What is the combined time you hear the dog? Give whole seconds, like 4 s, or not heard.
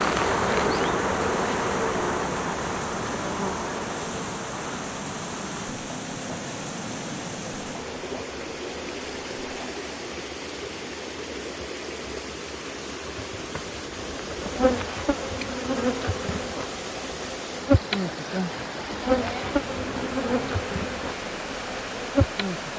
not heard.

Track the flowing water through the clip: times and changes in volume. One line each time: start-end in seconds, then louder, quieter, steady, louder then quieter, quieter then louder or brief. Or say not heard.
0.0-22.7 steady.